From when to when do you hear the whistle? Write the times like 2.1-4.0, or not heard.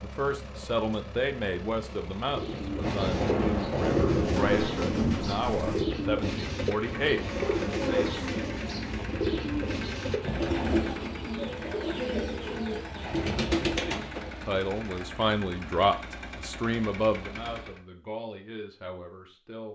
not heard.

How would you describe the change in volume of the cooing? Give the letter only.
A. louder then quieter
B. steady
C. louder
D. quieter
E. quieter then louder
B.